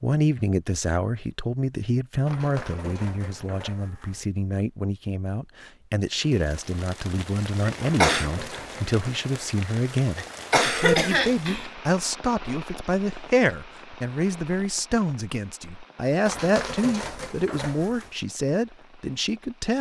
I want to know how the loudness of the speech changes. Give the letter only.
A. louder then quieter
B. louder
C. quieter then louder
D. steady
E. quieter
D.